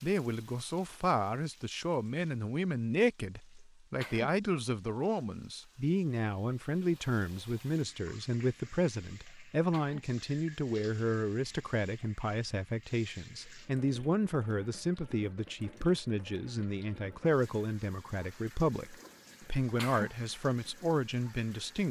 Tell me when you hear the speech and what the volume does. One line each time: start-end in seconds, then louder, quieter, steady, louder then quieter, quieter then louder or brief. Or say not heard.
0.0-21.8 steady.